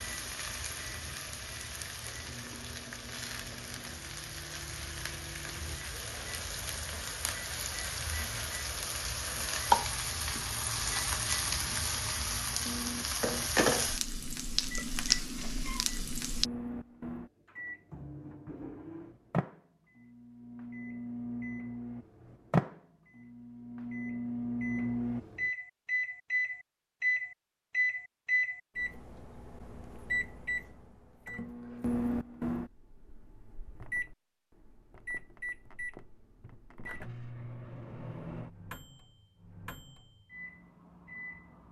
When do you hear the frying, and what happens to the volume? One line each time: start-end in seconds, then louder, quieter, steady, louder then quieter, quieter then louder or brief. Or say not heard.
0.0-16.4 louder.